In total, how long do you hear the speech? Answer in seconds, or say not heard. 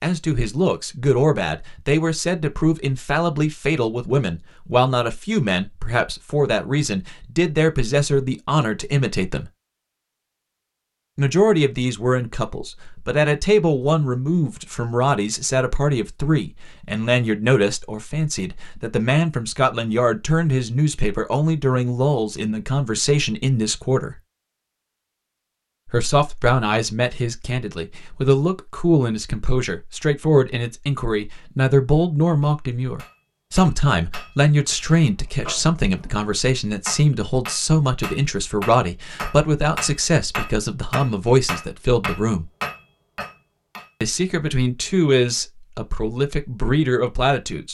43 s.